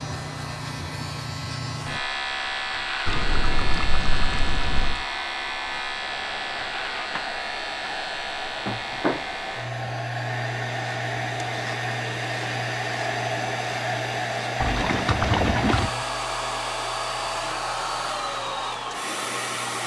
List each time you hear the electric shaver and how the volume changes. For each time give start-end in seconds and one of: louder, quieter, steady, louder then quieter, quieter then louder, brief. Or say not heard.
0.0-19.8 quieter.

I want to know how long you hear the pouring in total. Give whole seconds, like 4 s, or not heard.
3 s.